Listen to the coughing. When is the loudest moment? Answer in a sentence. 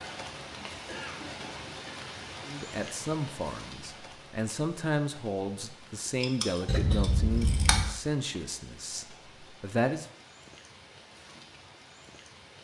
The loudest moment of the coughing is at 7 seconds.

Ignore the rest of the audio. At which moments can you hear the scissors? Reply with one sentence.
You can hear the scissors from 6.2 to 8.0 s.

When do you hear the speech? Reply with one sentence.
You can hear the speech from 2.5 to 10.1 s.